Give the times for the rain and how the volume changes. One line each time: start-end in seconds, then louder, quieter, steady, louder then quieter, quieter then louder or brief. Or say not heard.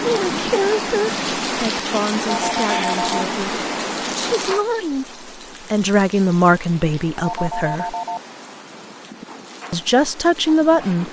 0.0-11.0 quieter.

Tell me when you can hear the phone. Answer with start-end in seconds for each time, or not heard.
2.2-3.2, 7.2-8.2.